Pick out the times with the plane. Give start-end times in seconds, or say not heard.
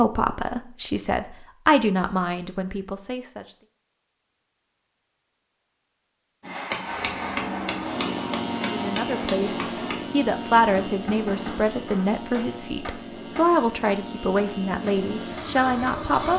6.8-16.3.